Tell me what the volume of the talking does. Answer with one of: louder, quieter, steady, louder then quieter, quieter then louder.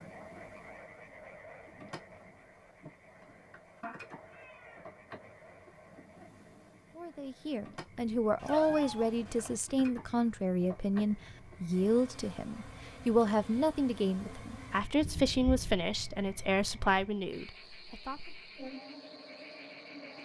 steady.